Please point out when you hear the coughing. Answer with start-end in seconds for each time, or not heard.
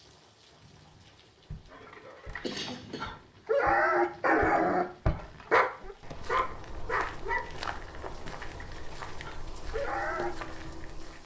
2.4-3.1.